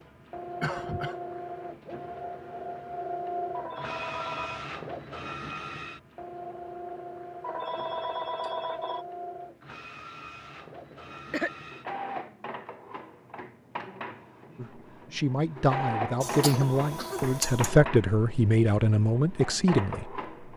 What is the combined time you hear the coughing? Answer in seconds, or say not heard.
3 s.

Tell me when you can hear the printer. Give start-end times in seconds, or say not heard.
0.0-20.5.